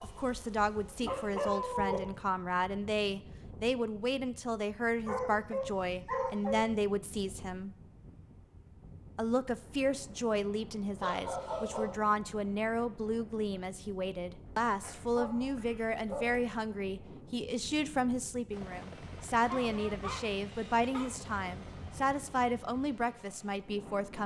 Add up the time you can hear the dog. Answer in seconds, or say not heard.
8 s.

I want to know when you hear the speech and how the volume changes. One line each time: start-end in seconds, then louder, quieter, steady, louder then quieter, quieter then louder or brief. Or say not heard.
0.0-7.8 steady
9.2-24.2 steady.